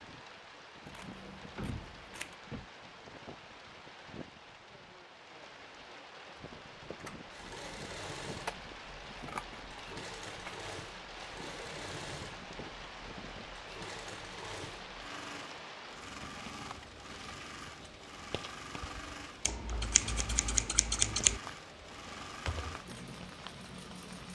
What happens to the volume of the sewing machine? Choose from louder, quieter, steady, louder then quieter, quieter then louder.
steady.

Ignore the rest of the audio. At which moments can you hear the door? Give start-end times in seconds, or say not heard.
1.6-2.6.